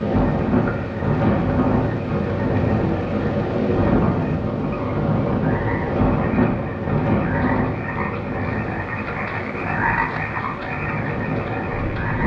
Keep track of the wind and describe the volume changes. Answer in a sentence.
The volume of the wind goes down.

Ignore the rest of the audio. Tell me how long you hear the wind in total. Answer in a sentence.
The wind can be heard for 12 seconds in total.